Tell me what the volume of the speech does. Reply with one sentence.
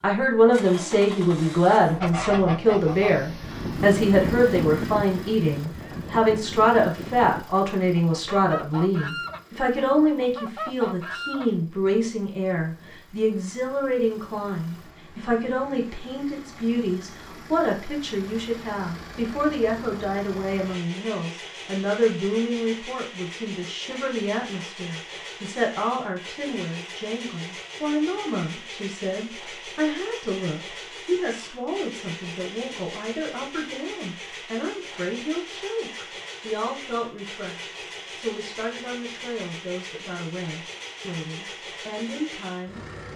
The loudness of the speech goes down.